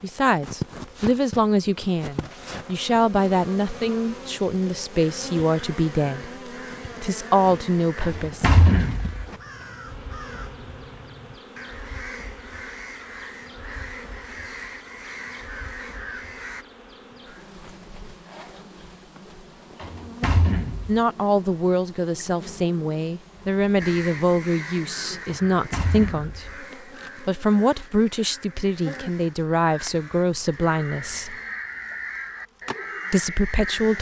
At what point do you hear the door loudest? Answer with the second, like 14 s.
9 s.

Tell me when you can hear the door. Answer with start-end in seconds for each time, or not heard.
8.0-9.2, 19.8-21.0, 25.2-26.4.